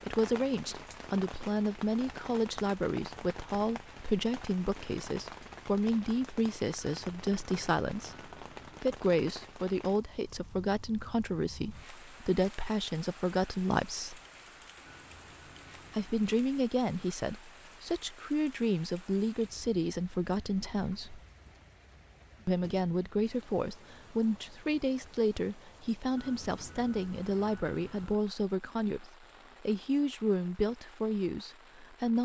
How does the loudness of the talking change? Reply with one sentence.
The loudness of the talking stays about the same.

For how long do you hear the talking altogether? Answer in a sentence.
You can hear the talking for 29 seconds altogether.